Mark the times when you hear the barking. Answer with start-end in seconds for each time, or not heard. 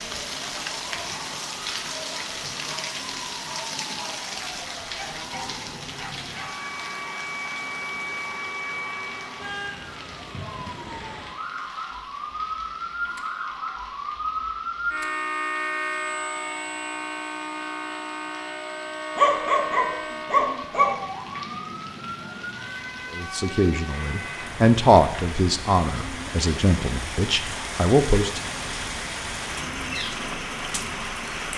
5.0-6.5, 19.1-21.0.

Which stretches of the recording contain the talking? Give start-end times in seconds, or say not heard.
23.1-28.4.